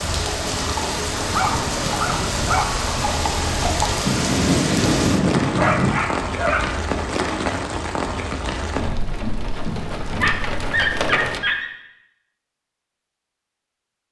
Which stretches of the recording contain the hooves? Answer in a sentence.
The hooves can be heard from 0.0 to 6.0 s and from 8.7 to 10.3 s.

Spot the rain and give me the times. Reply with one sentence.
The rain can be heard from 0.0 to 11.4 s.